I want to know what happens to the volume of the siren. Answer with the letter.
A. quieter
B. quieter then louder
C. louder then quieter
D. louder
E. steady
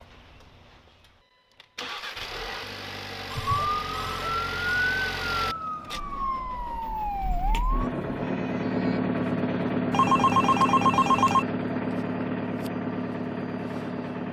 A.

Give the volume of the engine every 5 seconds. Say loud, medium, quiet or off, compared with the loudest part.
medium, loud, loud.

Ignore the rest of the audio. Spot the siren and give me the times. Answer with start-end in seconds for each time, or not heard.
3.5-9.0.